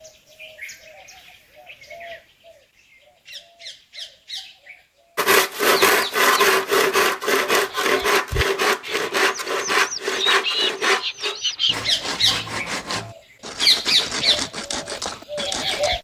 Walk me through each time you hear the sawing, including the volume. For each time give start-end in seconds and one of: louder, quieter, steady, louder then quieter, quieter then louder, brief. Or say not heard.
5.2-15.9 quieter.